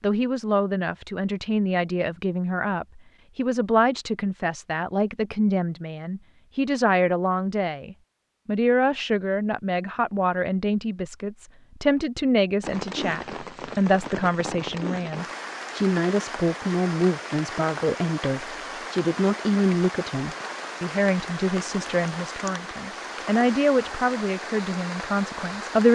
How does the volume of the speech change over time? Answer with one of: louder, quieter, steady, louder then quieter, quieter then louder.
steady.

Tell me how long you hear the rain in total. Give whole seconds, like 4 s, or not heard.
13 s.